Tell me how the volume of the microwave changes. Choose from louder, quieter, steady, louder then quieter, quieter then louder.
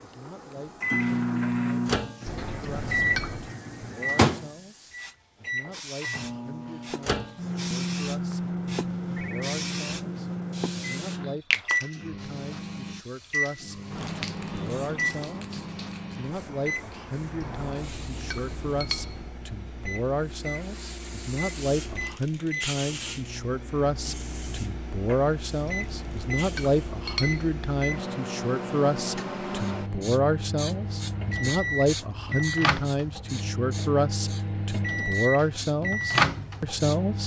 quieter then louder.